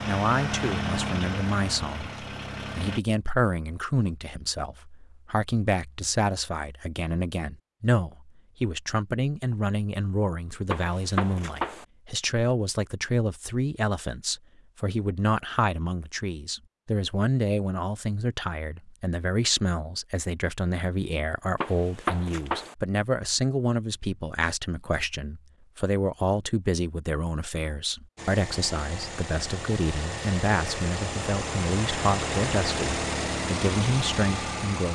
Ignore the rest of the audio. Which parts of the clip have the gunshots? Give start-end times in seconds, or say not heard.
10.7-11.8, 21.6-22.8.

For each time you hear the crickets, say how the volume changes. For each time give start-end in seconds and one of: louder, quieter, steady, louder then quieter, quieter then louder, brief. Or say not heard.
not heard.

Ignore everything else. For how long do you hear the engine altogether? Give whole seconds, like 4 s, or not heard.
10 s.